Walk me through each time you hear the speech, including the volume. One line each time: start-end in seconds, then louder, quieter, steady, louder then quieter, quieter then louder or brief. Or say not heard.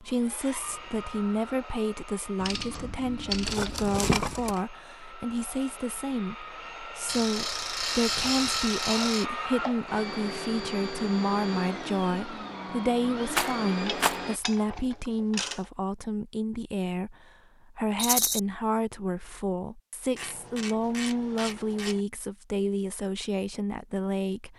0.0-24.5 steady.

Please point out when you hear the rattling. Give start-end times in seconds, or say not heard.
3.5-4.6, 13.3-14.2, 17.9-18.4.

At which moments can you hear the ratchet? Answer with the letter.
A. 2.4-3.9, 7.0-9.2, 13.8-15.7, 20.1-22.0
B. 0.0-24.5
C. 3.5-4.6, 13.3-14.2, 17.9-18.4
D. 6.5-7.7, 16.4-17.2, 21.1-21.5
A.